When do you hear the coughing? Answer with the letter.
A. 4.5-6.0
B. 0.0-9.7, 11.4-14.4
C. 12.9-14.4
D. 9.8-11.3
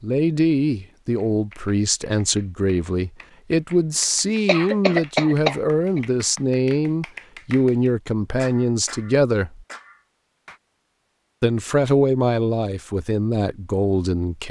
A.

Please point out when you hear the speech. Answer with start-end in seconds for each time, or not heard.
0.0-9.7, 11.4-14.4.